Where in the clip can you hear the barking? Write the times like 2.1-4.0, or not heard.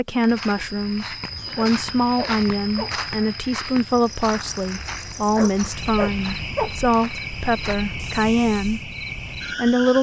1.6-3.0, 5.3-6.8.